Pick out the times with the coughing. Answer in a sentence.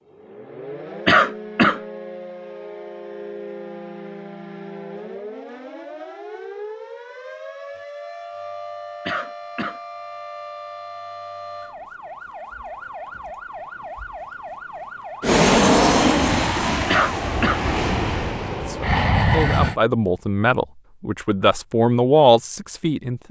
The coughing can be heard from 1.1 to 1.8 s, from 9.1 to 9.8 s and from 16.9 to 17.6 s.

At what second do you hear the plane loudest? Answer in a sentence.
The loudest moment of the plane is at 16 seconds.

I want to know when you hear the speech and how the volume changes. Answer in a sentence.
The speech can be heard from 18.5 to 23.2 s, getting louder.